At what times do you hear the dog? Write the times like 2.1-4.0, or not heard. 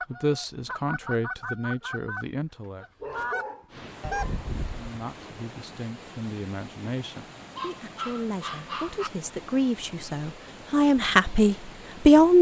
2.5-4.4, 7.5-9.1.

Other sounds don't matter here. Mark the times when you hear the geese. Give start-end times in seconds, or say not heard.
0.0-4.8.